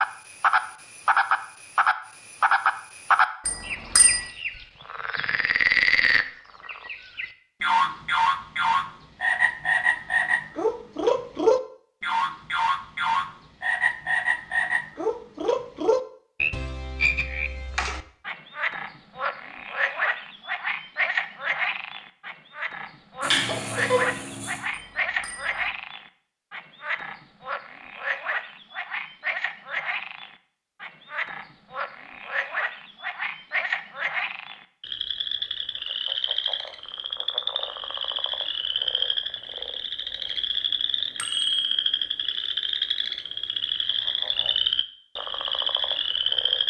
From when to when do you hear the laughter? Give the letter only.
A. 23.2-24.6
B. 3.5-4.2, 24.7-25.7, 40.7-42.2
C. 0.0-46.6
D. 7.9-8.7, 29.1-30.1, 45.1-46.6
A.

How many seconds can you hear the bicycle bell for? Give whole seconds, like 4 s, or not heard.
3 s.